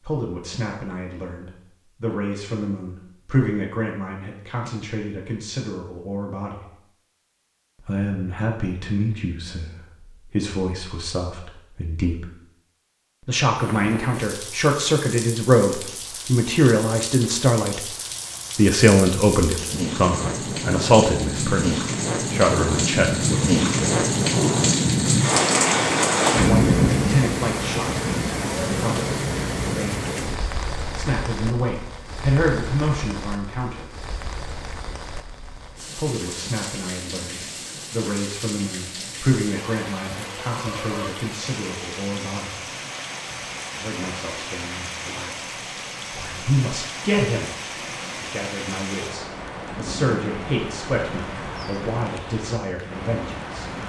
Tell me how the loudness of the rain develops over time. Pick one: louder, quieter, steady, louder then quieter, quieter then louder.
louder then quieter.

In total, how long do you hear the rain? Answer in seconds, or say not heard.
40 s.